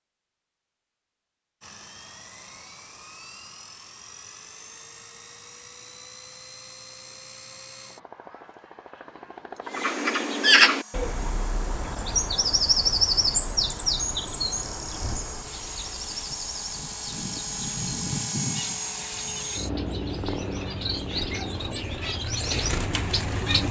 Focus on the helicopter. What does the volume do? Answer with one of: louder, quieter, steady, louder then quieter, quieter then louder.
louder.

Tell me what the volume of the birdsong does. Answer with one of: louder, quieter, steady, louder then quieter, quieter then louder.
quieter then louder.